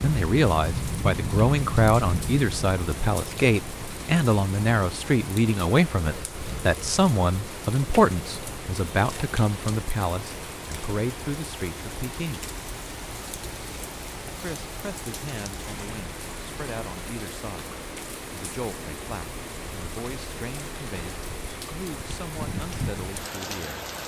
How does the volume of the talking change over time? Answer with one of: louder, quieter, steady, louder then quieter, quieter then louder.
quieter.